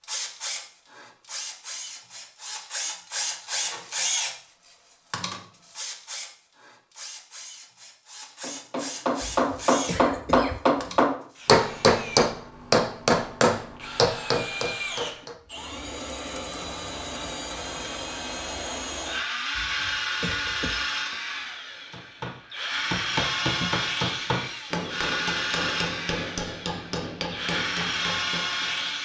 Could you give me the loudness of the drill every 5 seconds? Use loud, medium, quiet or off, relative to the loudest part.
loud, medium, medium, loud, loud, loud.